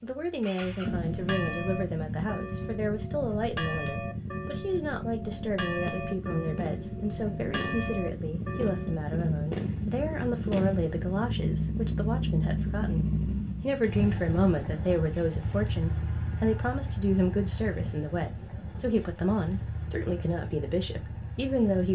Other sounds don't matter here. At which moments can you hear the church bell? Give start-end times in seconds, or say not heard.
1.1-9.0.